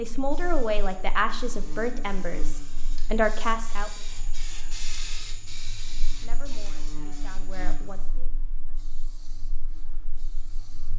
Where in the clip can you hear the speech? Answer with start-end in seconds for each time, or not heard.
0.0-3.9, 6.2-8.3.